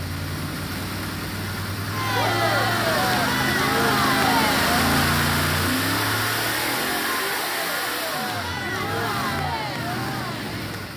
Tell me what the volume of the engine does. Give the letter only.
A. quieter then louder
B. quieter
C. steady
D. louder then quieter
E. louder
D.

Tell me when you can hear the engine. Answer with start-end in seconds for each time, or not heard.
0.0-10.9.